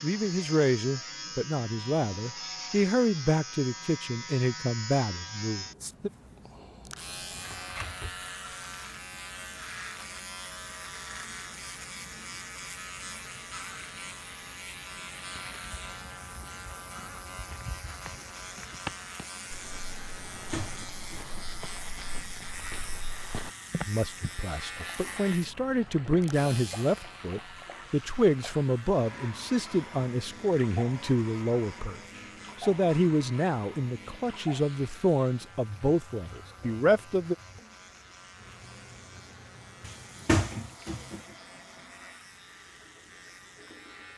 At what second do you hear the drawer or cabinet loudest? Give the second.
40 s.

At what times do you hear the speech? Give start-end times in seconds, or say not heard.
0.0-6.1, 23.9-37.4.